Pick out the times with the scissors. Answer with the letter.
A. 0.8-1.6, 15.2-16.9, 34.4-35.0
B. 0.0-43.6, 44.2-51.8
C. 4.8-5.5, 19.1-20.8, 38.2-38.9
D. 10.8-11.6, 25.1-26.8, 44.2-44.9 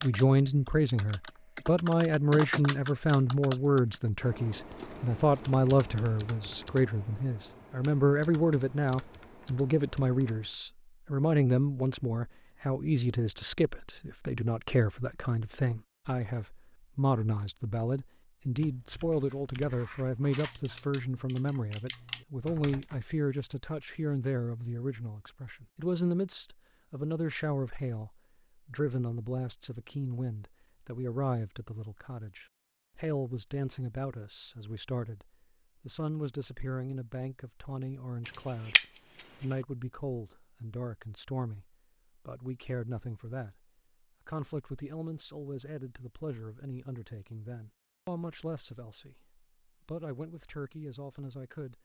C.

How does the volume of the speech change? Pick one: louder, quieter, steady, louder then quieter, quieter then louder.
quieter.